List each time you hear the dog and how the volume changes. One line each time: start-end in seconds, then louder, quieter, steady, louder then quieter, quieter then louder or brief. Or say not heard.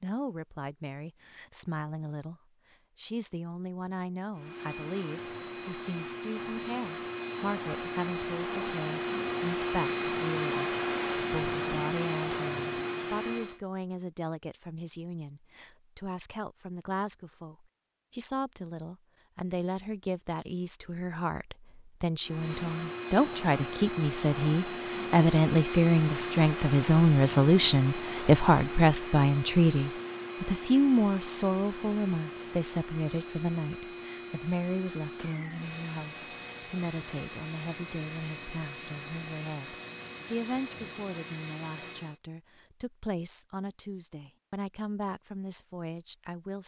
not heard.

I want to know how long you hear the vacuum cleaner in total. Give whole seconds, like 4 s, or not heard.
29 s.